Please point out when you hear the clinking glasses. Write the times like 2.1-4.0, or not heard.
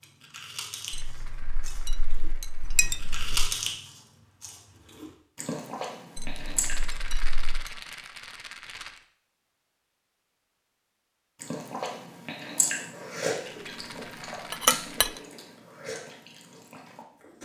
0.9-3.5, 6.2-7.7, 14.7-15.1.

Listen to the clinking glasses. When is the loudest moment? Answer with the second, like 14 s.
15 s.